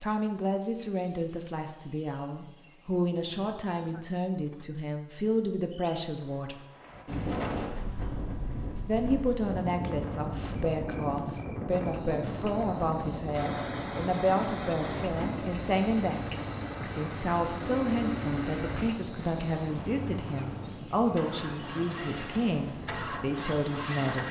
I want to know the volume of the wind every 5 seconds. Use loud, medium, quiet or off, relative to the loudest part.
off, loud, loud, medium, medium.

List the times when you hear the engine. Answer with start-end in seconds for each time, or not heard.
13.3-24.2.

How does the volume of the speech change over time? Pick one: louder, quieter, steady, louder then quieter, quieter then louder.
steady.